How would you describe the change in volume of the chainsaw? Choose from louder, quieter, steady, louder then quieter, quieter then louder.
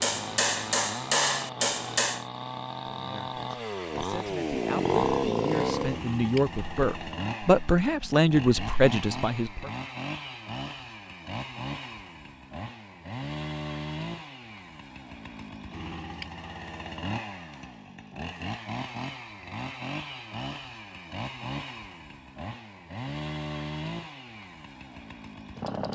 quieter.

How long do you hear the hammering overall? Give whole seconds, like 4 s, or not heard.
2 s.